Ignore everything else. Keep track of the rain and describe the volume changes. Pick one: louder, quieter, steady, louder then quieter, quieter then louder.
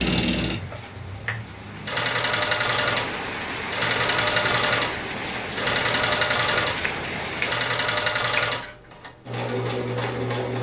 louder.